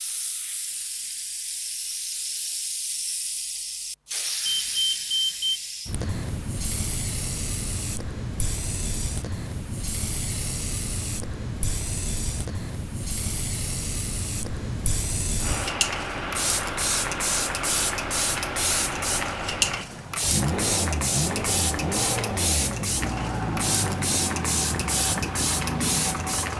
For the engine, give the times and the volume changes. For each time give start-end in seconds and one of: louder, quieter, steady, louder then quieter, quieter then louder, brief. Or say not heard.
15.4-26.5 steady.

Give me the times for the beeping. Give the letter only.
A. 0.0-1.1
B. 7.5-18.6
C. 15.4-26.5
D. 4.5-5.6
D.